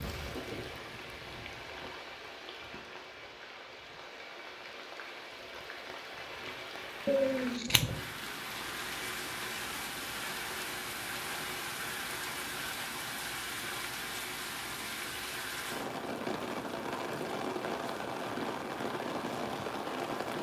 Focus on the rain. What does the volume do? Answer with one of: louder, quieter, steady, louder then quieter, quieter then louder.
louder.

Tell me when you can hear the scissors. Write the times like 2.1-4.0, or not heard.
7.0-7.9.